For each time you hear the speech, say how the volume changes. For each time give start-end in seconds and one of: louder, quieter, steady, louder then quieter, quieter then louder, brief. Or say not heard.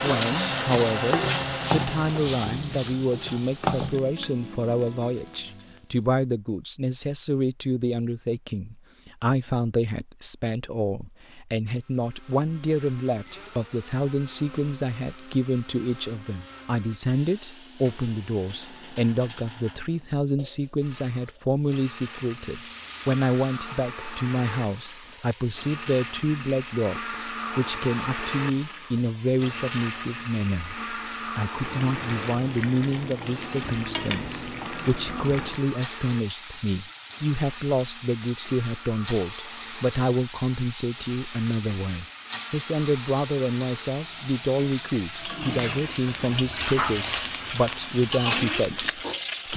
0.0-49.5 steady.